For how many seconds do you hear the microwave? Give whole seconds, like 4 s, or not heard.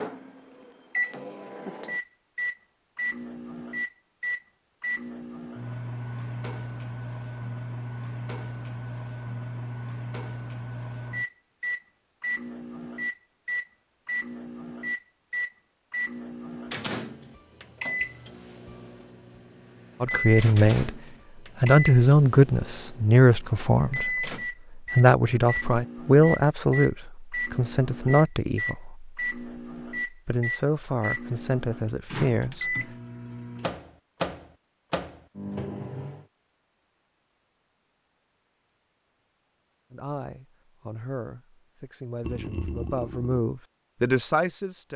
36 s.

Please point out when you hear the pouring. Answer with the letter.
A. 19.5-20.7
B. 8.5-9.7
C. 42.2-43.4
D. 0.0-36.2
C.